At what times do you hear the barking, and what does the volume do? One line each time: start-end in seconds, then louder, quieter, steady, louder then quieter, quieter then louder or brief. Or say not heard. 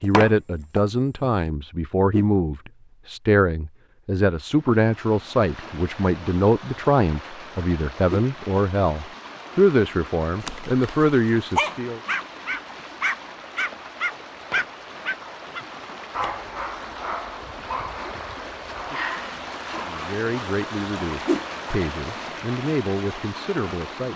10.4-20.1 quieter.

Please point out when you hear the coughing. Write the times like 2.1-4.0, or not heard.
not heard.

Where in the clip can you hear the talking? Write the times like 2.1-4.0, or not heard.
0.0-12.0, 19.9-24.1.